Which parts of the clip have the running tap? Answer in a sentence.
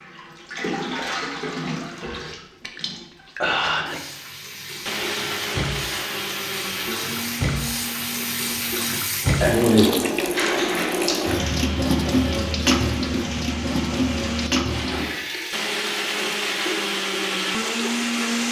You can hear the running tap from 0.0 to 18.2 s.